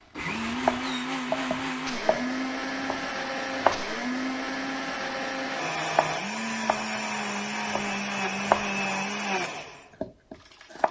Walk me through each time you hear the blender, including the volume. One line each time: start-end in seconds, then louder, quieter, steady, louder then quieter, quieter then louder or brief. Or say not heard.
0.1-10.8 steady.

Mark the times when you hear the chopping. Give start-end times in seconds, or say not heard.
0.3-4.0, 5.9-6.9, 7.7-8.8, 9.6-10.8.